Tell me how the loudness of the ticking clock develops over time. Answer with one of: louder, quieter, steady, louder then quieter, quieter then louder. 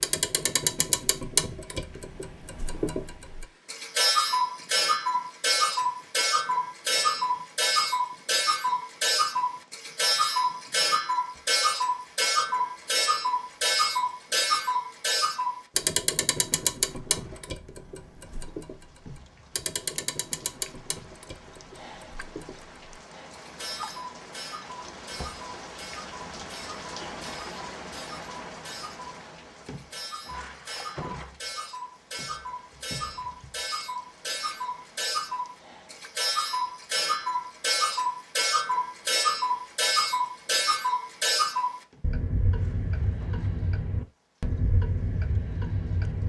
quieter then louder.